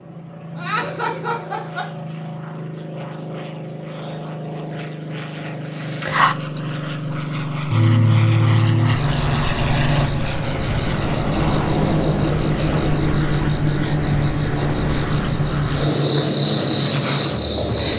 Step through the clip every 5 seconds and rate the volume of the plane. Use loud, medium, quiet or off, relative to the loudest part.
medium, loud, loud, loud.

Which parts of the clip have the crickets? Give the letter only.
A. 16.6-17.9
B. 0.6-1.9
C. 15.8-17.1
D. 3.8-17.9
D.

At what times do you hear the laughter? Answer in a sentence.
The laughter can be heard from 0.6 to 1.9 s.